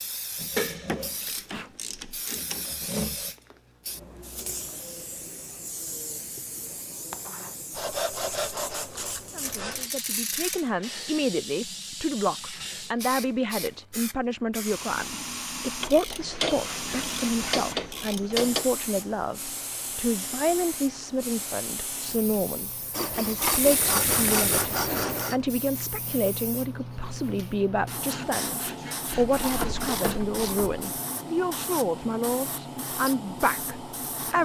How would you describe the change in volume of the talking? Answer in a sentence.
The volume of the talking stays about the same.